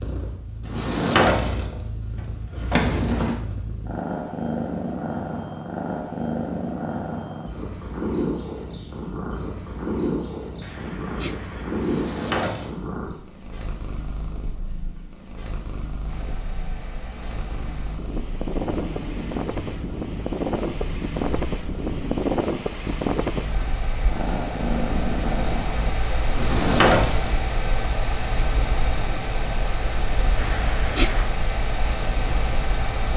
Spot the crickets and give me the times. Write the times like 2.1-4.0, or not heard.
not heard.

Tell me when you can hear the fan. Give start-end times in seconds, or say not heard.
16.1-33.1.